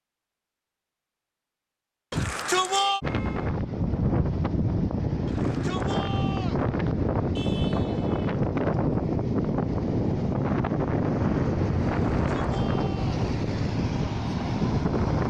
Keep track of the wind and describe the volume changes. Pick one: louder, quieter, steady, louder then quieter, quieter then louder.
steady.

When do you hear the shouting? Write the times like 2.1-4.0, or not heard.
2.1-3.0, 5.2-6.7, 12.2-13.2.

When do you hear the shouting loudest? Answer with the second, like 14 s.
3 s.